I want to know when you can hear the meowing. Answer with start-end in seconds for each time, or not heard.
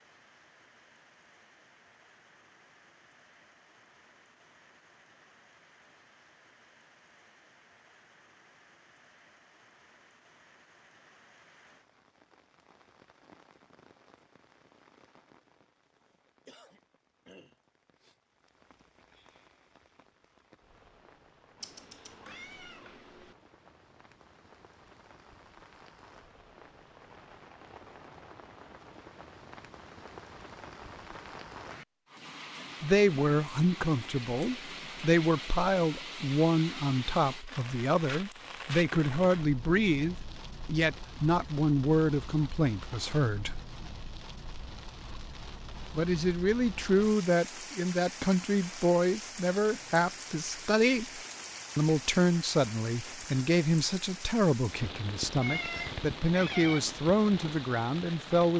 21.6-23.4, 55.4-56.8.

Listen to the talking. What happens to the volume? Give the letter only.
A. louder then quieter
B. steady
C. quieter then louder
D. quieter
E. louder
B.